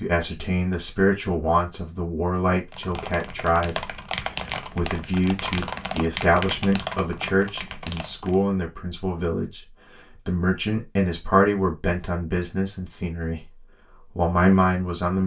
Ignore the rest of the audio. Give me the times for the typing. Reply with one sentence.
You can hear the typing from 2.7 to 8.3 s.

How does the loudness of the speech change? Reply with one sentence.
The loudness of the speech stays about the same.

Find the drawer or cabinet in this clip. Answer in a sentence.
The drawer or cabinet can't be heard in this clip.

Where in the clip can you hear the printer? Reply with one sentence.
You can't hear the printer here.